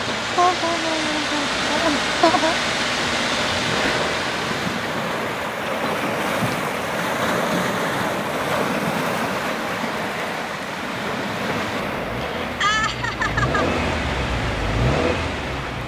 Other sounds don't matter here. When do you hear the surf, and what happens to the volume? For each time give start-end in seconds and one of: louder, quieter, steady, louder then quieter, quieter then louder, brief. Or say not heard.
0.0-15.8 louder then quieter.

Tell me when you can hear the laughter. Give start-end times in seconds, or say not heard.
0.3-2.5, 12.2-13.7.